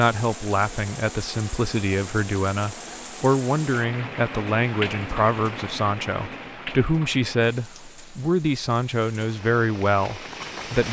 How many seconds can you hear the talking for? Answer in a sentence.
The talking can be heard for 11 seconds in total.